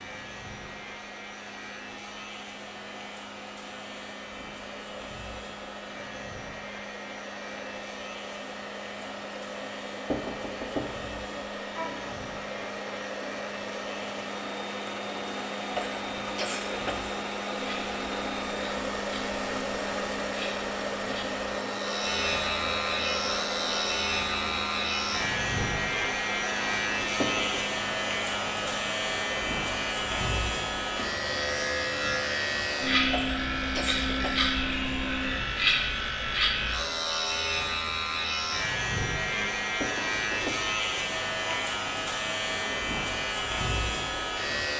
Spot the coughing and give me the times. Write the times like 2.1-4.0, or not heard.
15.8-17.1, 33.1-34.5.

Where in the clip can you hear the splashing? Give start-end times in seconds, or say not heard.
not heard.